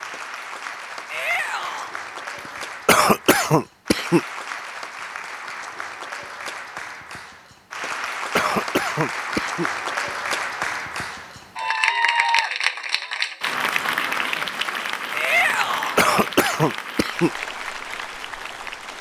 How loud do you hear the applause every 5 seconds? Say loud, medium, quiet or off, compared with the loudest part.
medium, medium, loud, medium.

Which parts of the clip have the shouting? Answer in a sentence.
The shouting can be heard from 1.1 to 1.9 s and from 15.2 to 16.0 s.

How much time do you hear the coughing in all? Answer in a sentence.
The coughing can be heard for 4 seconds in total.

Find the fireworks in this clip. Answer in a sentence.
The fireworks can't be heard in this clip.